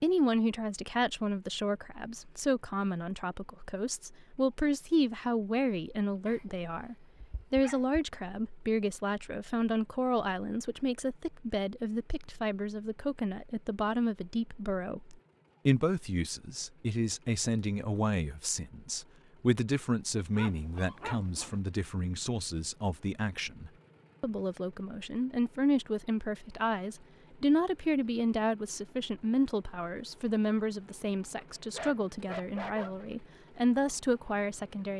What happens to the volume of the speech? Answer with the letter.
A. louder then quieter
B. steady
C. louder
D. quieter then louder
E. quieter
B.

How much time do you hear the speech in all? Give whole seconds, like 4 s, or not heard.
35 s.